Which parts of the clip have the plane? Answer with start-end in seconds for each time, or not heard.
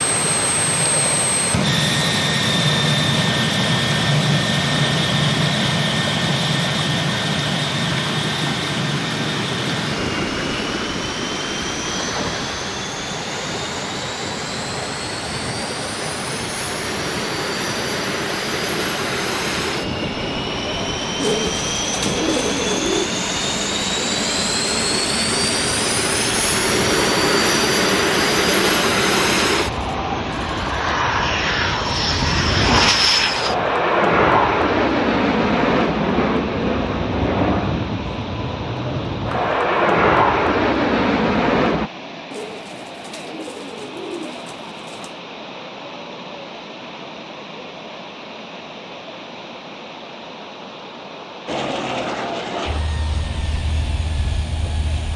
0.0-41.9, 51.5-55.1.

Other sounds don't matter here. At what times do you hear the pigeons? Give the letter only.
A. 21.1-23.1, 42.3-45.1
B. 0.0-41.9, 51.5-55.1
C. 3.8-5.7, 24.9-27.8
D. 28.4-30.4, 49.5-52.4
A.